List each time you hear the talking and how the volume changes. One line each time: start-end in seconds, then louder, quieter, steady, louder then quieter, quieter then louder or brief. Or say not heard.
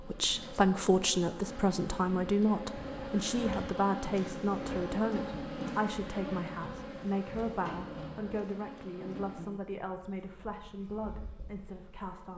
0.0-12.3 quieter.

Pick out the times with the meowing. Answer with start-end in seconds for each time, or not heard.
not heard.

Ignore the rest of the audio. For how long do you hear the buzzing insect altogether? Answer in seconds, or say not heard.
12 s.